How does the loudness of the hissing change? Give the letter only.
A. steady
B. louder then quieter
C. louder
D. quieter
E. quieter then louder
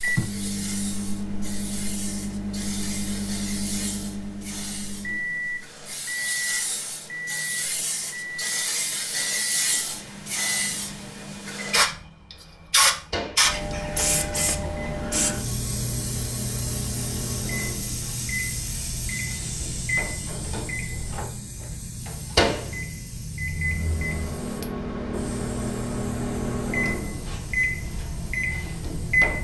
B.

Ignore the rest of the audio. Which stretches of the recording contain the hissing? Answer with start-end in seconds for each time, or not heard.
0.0-29.3.